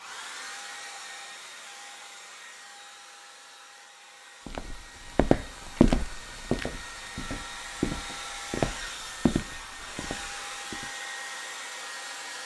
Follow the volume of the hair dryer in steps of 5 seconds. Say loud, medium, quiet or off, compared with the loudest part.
medium, loud, loud.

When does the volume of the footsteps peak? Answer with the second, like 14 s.
6 s.